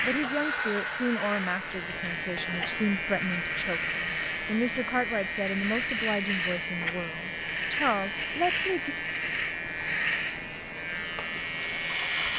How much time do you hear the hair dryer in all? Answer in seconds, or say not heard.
2 s.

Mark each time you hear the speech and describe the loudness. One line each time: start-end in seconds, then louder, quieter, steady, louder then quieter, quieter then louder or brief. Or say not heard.
0.0-8.9 steady.